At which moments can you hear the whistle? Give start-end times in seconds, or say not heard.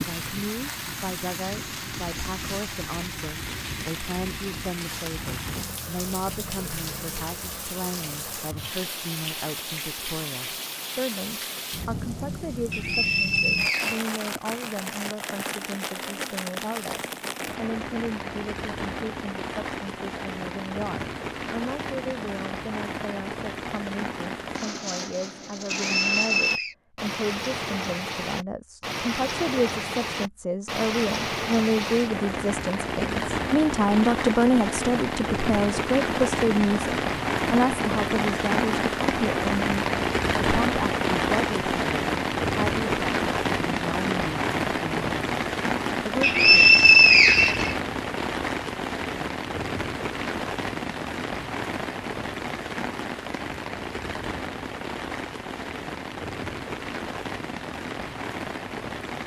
12.7-14.0, 25.7-26.8, 46.2-47.8.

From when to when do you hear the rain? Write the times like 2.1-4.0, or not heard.
0.0-59.2.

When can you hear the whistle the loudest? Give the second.
47 s.